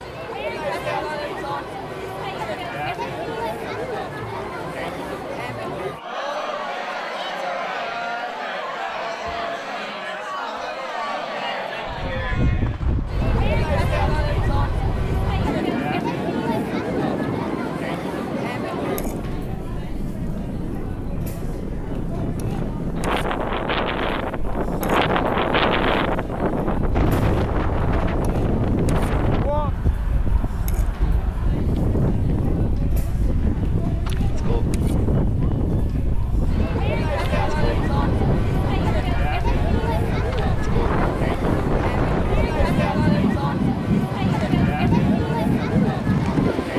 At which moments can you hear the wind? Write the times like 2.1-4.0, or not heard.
11.8-46.7.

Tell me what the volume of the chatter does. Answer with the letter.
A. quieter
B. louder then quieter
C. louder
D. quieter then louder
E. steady
D.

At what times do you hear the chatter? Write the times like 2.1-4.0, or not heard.
0.0-46.7.